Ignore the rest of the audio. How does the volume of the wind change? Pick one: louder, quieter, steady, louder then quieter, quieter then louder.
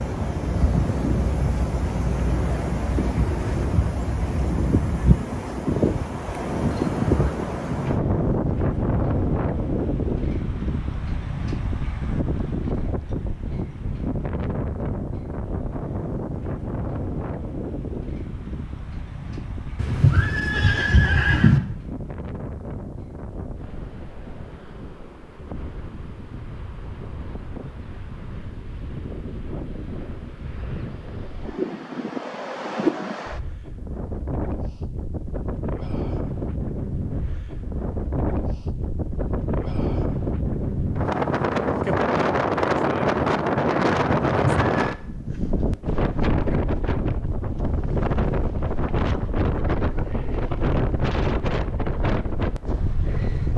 quieter then louder.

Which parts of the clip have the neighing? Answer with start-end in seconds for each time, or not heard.
19.8-21.6, 44.1-44.9.